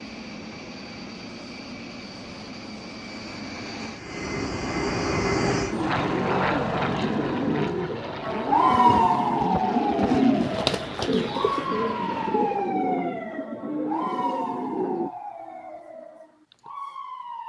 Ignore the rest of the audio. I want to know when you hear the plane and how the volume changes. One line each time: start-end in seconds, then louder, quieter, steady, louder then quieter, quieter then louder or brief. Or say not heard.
0.0-12.8 louder then quieter.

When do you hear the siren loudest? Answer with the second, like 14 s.
9 s.